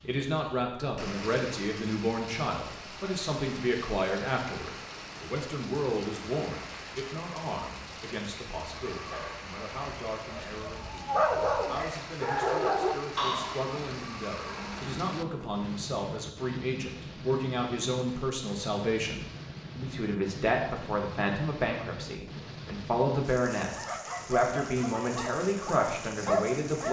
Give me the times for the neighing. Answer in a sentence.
You can hear the neighing from 8.7 to 9.4 s and from 14.1 to 15.7 s.